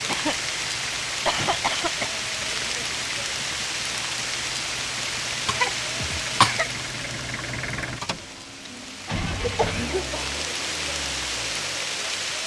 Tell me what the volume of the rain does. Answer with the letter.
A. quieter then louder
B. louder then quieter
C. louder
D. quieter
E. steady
A.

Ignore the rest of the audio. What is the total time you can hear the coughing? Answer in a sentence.
You can hear the coughing for 5 seconds altogether.